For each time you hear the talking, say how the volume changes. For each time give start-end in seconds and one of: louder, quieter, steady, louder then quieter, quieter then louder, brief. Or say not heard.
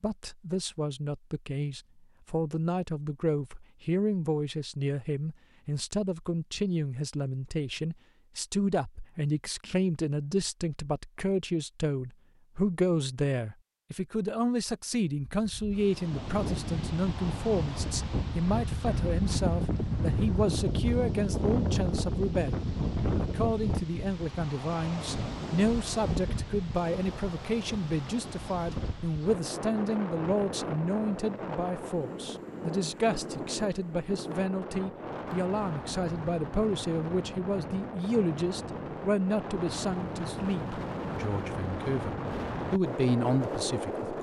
0.0-44.1 steady.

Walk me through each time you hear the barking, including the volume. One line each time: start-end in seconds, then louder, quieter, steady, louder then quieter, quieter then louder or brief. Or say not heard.
not heard.